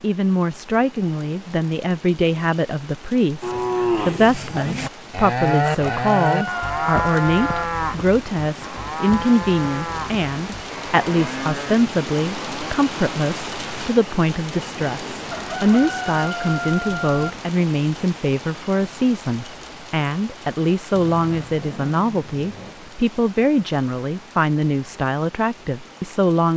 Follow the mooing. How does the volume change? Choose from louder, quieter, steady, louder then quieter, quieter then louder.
quieter.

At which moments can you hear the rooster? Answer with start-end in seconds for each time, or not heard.
5.7-7.7, 15.3-17.3.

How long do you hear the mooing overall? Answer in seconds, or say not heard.
9 s.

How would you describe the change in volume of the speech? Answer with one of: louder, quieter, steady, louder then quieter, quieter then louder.
steady.